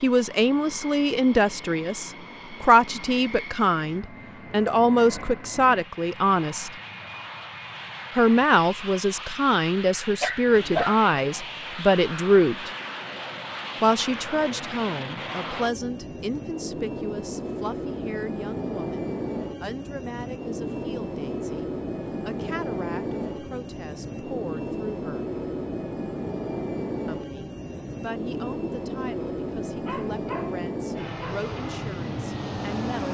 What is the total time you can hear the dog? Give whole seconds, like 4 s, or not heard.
2 s.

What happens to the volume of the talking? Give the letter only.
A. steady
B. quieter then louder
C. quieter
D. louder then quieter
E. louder
C.